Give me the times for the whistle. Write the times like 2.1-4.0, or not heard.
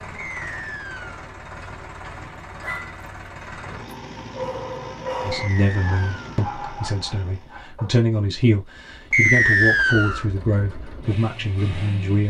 0.1-1.2, 5.3-6.2, 9.1-10.2.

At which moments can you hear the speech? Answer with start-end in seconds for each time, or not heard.
5.2-12.2.